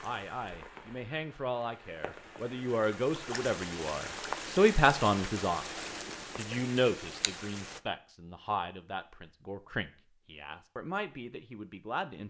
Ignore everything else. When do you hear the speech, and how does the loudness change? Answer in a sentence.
You can hear the speech from 0.0 to 12.2 s, getting louder then quieter.